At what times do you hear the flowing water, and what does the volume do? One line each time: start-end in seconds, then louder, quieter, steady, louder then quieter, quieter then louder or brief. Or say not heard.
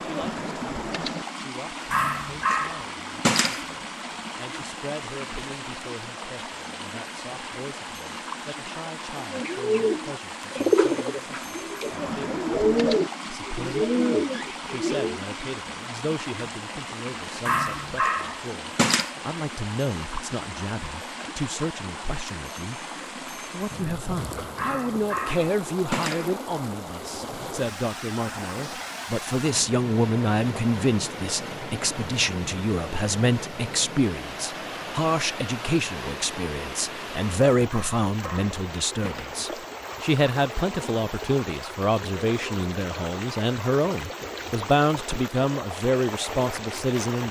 0.0-47.2 steady.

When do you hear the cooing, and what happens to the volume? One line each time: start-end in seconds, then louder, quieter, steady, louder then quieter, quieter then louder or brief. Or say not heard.
9.2-15.2 steady.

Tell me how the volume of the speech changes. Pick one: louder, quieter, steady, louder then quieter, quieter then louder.
louder.